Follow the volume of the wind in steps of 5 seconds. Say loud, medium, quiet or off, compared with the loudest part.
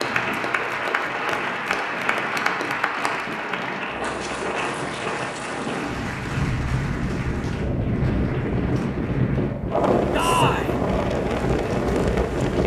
medium, loud, loud.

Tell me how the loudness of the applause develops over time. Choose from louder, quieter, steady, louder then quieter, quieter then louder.
quieter.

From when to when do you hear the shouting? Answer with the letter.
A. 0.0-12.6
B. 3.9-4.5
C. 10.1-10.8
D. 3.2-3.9
C.